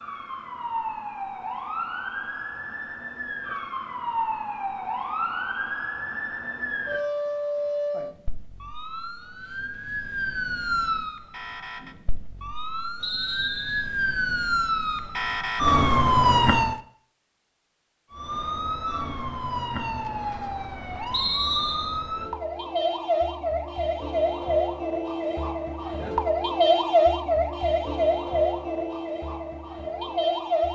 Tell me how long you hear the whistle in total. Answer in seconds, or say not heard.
2 s.